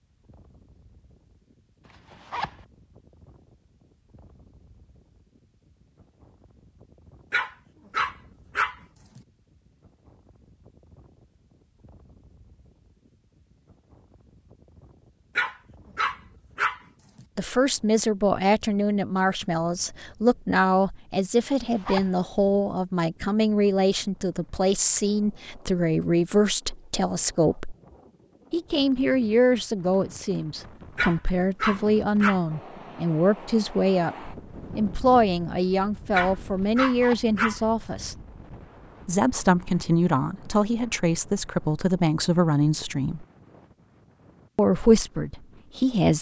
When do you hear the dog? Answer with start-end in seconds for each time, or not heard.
7.3-9.2, 15.3-17.2, 30.9-32.4, 36.1-37.6.